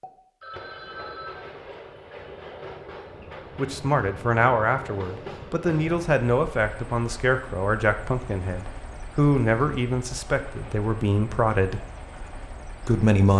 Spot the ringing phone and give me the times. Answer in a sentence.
You can hear the ringing phone from 0.4 to 1.5 s.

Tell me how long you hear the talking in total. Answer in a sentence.
The talking can be heard for 9 seconds in total.